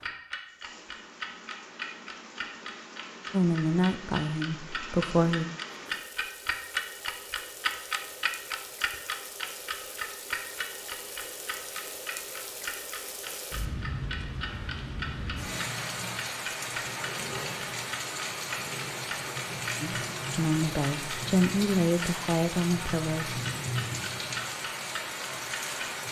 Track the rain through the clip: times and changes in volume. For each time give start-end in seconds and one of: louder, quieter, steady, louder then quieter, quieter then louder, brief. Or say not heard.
0.0-26.0 louder.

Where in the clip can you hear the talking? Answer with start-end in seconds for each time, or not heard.
3.3-5.5, 19.8-23.4.